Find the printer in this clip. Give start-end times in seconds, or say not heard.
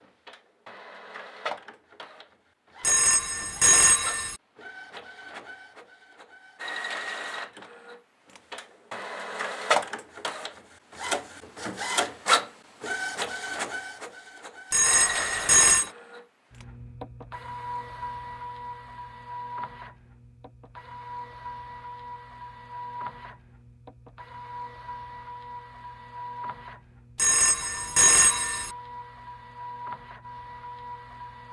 0.0-31.4.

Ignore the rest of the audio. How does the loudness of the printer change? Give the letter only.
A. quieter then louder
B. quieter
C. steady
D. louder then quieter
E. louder
D.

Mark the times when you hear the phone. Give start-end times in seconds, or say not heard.
2.8-4.3, 14.7-15.9, 27.1-28.7.